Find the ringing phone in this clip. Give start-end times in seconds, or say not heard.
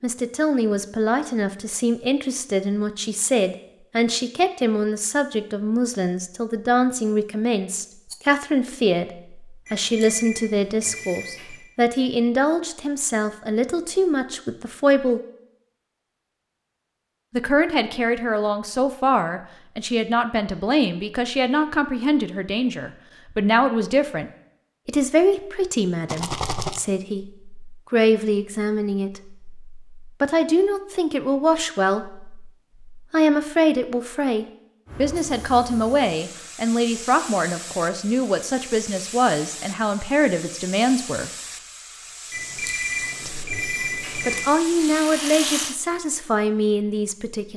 9.7-11.7, 42.3-44.5.